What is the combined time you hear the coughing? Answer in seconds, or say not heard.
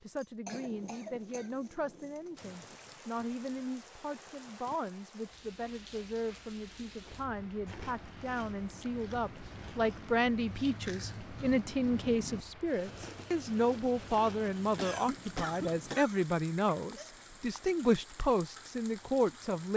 3 s.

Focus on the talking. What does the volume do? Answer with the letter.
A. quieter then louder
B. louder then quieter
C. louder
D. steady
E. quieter
C.